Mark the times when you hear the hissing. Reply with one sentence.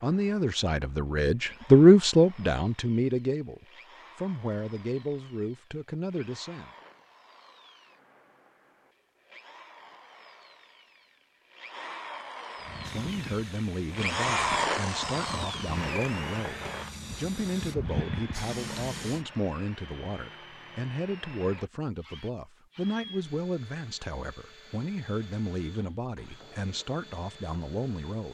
The hissing can be heard from 12.7 to 19.2 s.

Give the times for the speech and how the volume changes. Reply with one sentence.
You can hear the speech from 0.0 to 6.7 s, getting louder then quieter; and from 12.9 to 28.2 s, at a steady volume.